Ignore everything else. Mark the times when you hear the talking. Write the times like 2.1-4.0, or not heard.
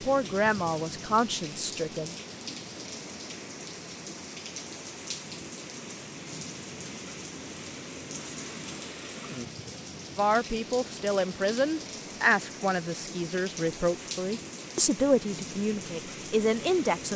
0.1-2.1, 10.2-17.1.